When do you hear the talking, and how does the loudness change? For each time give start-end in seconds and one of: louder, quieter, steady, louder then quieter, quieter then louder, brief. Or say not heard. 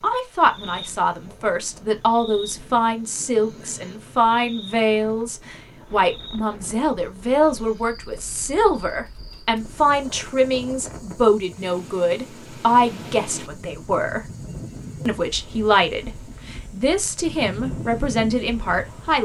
0.0-14.3 steady
15.1-19.2 quieter then louder.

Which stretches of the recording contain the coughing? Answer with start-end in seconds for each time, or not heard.
not heard.